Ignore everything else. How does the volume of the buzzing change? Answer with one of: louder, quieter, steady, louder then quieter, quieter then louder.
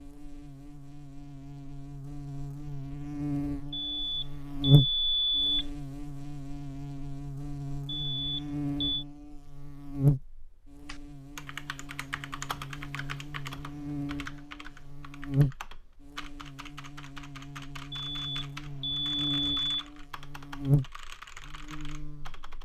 steady.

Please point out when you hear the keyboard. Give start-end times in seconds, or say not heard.
10.8-22.5.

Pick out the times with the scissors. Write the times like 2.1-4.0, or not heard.
not heard.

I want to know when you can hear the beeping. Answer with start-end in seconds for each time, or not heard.
3.7-5.7, 7.8-9.1, 17.9-19.9.